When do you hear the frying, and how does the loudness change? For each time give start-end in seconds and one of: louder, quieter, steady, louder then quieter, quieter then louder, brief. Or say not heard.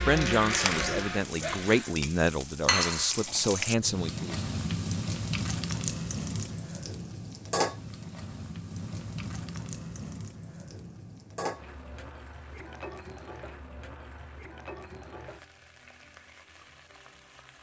0.0-17.5 quieter.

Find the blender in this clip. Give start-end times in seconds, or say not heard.
0.0-1.9.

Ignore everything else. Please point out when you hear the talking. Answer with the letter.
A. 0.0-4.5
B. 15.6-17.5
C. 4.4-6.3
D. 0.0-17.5
A.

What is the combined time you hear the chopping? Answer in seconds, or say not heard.
not heard.